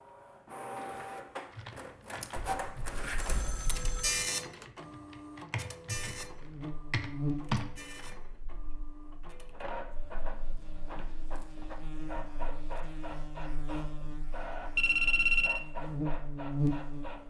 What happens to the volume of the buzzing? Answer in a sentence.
The loudness of the buzzing goes down, then up.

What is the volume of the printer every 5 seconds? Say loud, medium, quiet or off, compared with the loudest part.
loud, medium, medium, medium.